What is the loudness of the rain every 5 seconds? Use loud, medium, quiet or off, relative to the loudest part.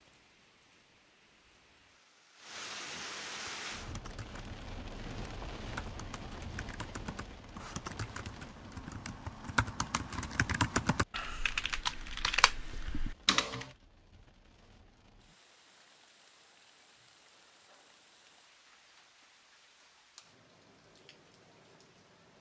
loud, loud, quiet, quiet, quiet.